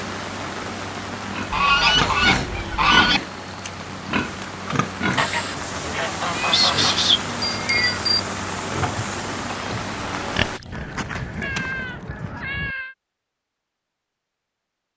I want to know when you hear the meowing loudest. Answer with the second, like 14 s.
7 s.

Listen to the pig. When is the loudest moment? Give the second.
3 s.